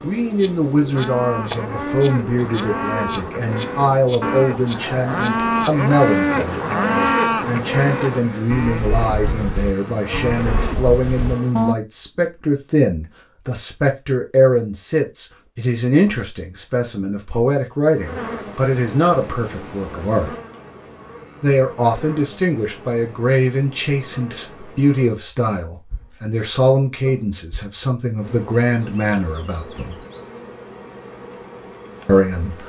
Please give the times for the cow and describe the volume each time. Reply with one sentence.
You can hear the cow from 0.9 to 11.8 s, getting louder then quieter.